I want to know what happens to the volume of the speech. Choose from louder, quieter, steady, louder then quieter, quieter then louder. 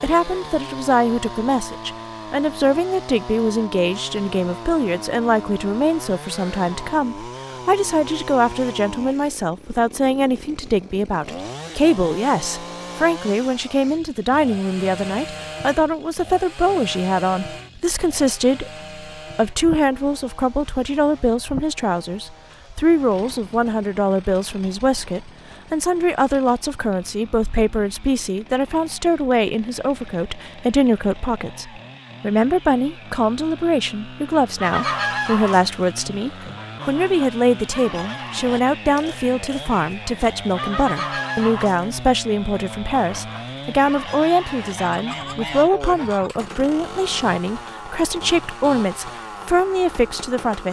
steady.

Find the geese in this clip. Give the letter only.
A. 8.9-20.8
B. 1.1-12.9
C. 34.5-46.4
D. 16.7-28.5
C.